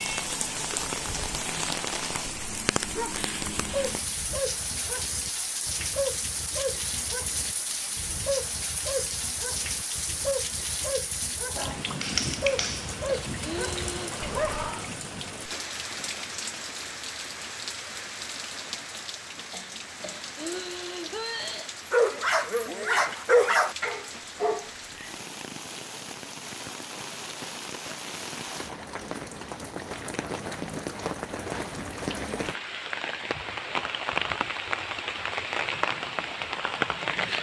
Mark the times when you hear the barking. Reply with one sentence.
You can hear the barking from 2.9 to 14.8 s and from 21.9 to 25.1 s.